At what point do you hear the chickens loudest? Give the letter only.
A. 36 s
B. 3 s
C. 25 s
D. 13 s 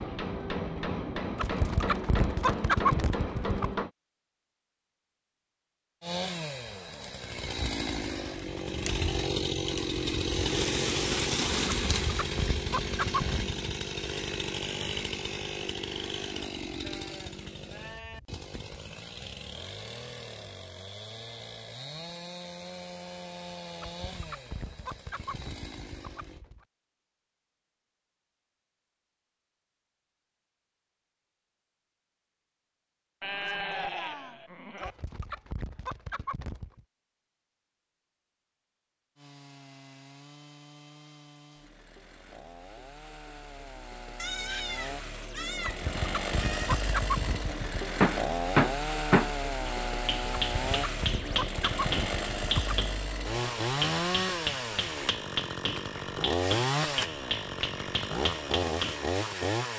B.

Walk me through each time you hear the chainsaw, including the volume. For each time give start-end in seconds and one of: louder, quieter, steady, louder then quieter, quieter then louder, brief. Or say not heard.
6.0-26.4 quieter
39.1-59.7 louder.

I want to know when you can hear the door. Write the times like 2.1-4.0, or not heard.
not heard.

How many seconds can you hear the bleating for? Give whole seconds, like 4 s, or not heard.
6 s.